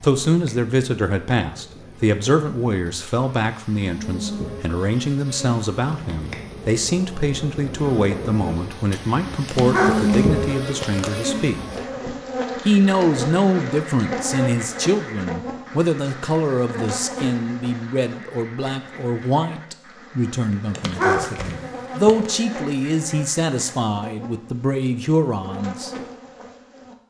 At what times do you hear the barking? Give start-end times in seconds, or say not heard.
9.4-11.1, 20.8-22.4.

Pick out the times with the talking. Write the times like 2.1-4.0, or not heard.
0.0-11.6, 12.7-25.9.